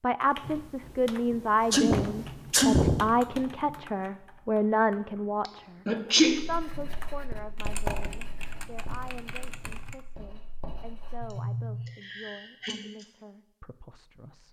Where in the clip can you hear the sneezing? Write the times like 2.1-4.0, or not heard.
1.7-3.1, 5.5-6.5, 11.2-13.1.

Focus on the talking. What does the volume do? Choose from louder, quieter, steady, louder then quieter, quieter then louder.
quieter.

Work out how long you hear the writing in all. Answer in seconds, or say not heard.
5 s.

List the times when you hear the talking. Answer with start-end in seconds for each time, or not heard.
0.0-14.4.